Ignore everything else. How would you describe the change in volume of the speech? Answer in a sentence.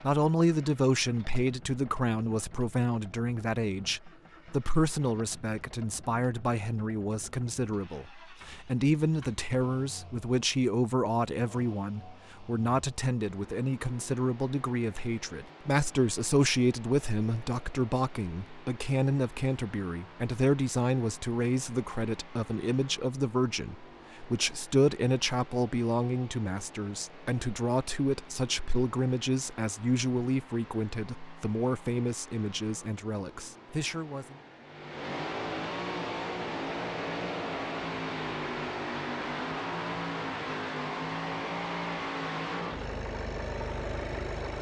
The loudness of the speech stays about the same.